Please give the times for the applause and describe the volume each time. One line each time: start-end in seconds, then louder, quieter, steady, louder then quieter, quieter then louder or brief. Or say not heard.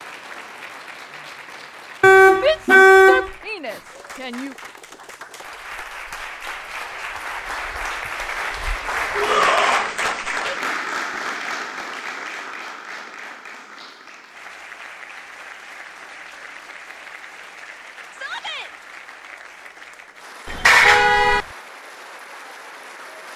0.0-23.3 louder then quieter.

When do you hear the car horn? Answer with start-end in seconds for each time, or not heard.
2.0-3.3, 20.4-21.4.